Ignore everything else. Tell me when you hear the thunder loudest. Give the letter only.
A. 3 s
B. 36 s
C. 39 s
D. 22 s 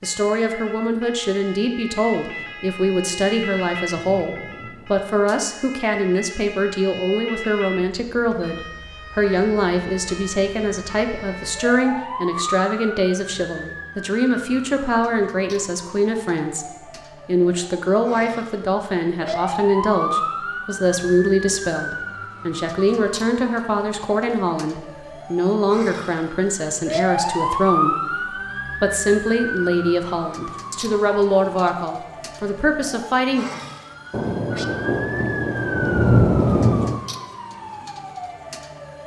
B.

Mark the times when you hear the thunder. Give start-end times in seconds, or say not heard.
2.3-5.4, 34.1-37.0.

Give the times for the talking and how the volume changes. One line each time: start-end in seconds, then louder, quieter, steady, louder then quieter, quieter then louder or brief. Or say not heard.
0.0-33.5 steady.